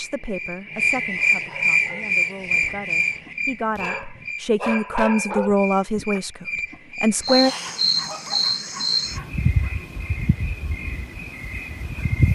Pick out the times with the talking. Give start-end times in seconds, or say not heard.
0.0-7.5.